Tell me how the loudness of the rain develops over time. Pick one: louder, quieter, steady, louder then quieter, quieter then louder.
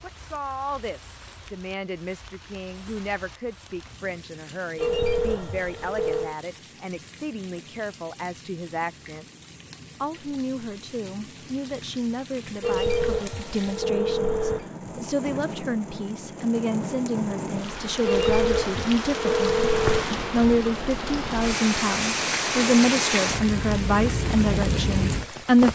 louder.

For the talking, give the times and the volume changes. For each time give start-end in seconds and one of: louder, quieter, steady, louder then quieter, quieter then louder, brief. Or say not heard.
0.0-9.2 steady
10.0-25.6 louder.